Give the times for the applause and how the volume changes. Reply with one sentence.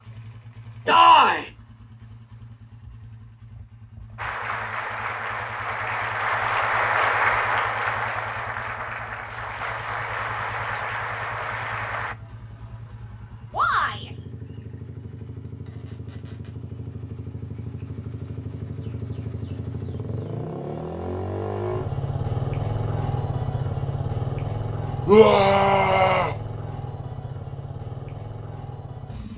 The applause can be heard from 4.2 to 12.2 s, getting louder then quieter.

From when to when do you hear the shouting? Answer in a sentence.
You can hear the shouting from 0.8 to 1.5 s, from 13.5 to 14.1 s and from 25.1 to 26.4 s.